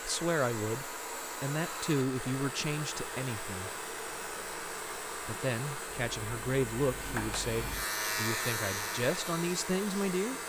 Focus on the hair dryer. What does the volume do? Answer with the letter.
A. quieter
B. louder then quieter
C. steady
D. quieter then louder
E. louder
C.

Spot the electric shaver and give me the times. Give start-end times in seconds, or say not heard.
1.9-10.4.